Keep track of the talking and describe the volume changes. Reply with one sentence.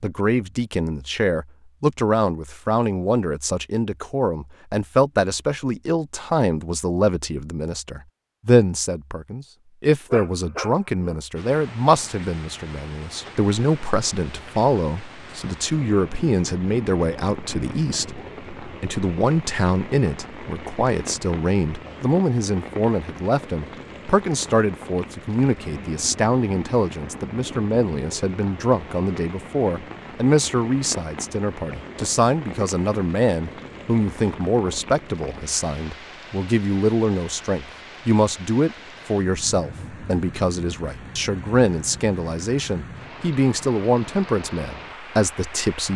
The volume of the talking stays about the same.